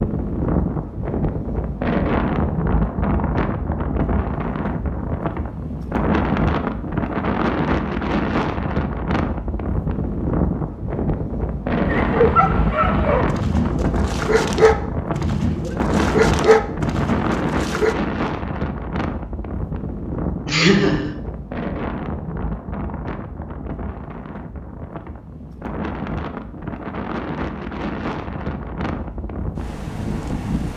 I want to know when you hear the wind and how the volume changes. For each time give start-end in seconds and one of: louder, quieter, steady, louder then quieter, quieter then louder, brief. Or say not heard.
0.0-30.7 quieter.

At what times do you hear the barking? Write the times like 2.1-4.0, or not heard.
11.8-17.9.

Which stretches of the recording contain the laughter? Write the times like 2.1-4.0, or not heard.
20.4-21.1.